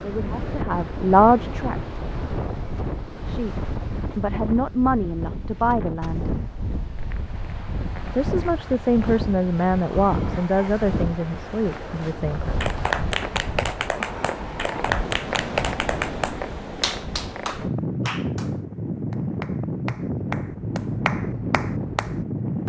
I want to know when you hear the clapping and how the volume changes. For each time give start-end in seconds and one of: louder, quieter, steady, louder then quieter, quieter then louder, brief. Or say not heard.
12.6-22.2 quieter then louder.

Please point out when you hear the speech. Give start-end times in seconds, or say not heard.
0.0-1.8, 3.2-6.3, 8.2-12.7.